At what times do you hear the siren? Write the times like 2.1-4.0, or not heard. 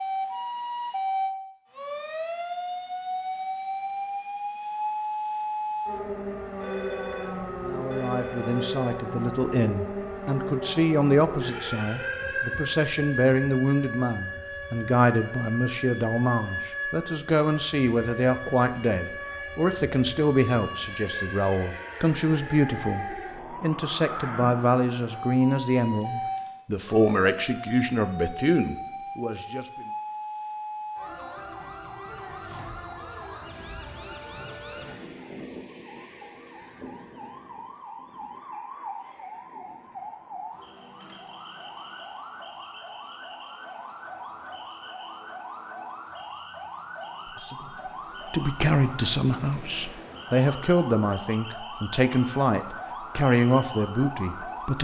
0.0-54.7.